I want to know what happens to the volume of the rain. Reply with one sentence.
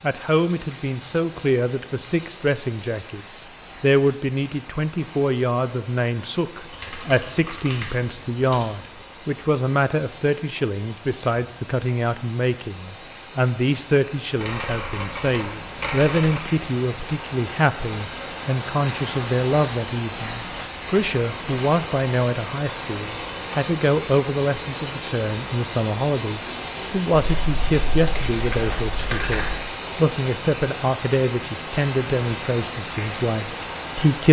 The loudness of the rain goes up.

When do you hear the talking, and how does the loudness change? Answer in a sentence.
You can hear the talking from 0.0 to 34.2 s, at a steady volume.